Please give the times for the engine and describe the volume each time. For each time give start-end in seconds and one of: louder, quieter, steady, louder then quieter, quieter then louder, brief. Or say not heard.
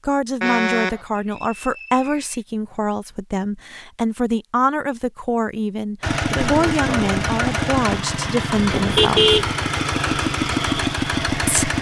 6.0-11.7 steady.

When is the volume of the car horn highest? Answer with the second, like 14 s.
9 s.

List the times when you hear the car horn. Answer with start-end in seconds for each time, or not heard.
0.4-1.1, 8.8-9.5.